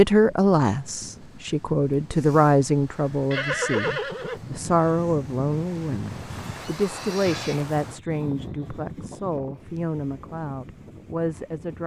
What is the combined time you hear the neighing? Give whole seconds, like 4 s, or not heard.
2 s.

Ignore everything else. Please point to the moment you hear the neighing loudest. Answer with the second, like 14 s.
4 s.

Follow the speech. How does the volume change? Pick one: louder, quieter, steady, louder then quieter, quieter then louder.
quieter.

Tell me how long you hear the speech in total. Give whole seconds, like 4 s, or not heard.
12 s.